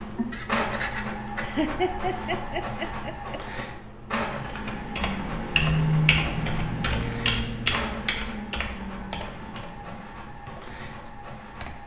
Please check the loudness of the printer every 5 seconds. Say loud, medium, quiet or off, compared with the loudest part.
loud, medium, medium.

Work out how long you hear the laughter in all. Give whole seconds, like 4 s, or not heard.
2 s.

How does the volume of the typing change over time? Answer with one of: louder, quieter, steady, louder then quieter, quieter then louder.
quieter.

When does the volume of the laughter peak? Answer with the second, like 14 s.
2 s.